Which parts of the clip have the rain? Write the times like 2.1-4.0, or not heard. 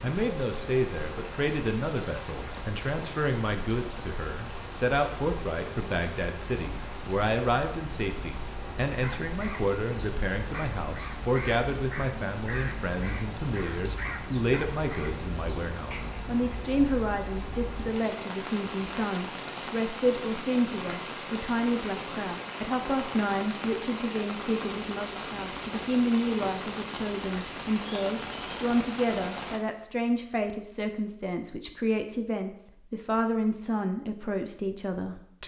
0.0-29.6.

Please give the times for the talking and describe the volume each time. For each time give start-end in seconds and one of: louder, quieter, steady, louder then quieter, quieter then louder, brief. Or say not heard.
0.0-35.4 steady.